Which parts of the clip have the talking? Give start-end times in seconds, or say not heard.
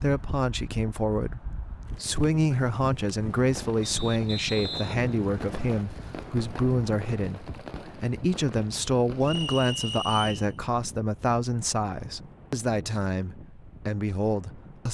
0.0-14.9.